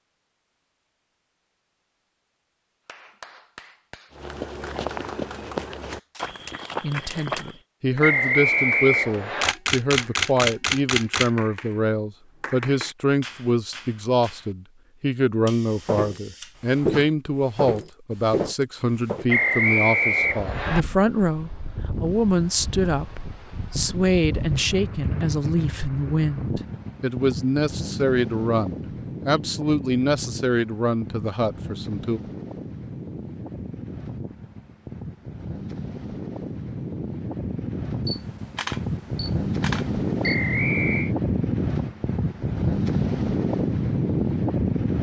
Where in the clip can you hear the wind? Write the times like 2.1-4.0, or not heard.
20.1-44.9.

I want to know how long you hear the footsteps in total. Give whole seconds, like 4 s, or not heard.
7 s.